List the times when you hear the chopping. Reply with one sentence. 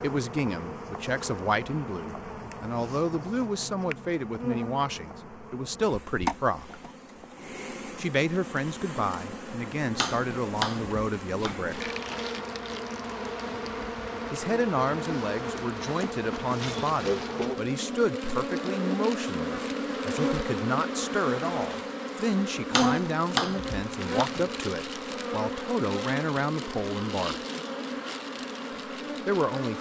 The chopping can be heard from 9.9 to 11.7 s and from 22.7 to 24.5 s.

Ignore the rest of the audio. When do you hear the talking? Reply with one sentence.
The talking can be heard from 0.0 to 6.8 s, from 8.0 to 11.9 s, from 14.3 to 27.4 s and from 29.2 to 29.7 s.